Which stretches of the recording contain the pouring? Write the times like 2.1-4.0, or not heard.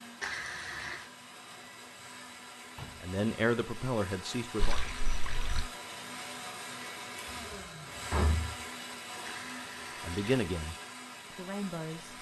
0.2-1.1, 4.5-5.7, 9.2-10.4.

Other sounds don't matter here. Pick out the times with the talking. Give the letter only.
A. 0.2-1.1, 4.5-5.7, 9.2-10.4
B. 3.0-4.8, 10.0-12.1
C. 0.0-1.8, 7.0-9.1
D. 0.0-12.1
B.